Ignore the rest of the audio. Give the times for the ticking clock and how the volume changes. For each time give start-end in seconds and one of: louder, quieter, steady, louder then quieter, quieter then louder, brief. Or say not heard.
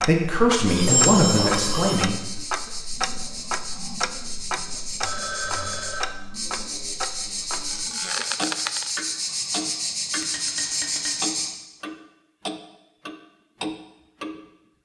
0.0-14.8 steady.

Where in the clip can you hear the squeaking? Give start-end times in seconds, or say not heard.
0.8-1.6, 7.7-8.8.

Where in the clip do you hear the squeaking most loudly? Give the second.
1 s.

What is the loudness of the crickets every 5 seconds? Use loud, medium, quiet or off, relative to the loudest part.
medium, loud, loud.